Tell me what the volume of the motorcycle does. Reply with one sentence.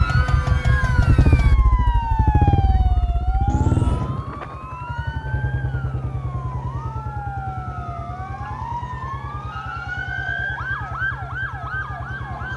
The loudness of the motorcycle goes down.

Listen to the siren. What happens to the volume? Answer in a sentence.
The loudness of the siren goes down, then up.